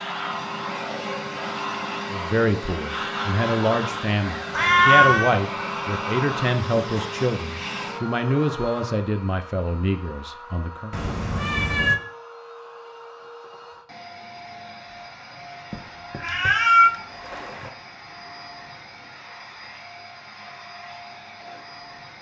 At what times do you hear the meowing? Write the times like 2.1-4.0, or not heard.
4.5-5.3, 10.9-12.0, 15.7-17.7.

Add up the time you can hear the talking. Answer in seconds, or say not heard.
9 s.